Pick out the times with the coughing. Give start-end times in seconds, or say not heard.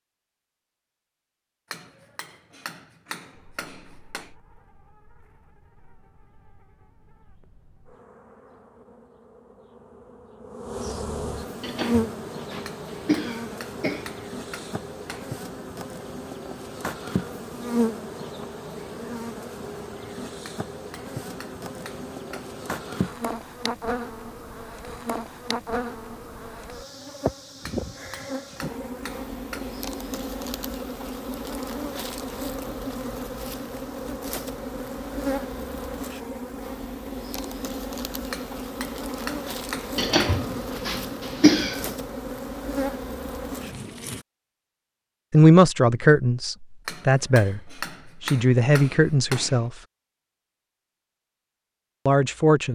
11.6-14.2, 40.0-42.0.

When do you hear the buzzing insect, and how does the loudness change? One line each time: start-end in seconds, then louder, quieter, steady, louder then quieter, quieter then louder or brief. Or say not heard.
3.3-44.2 louder.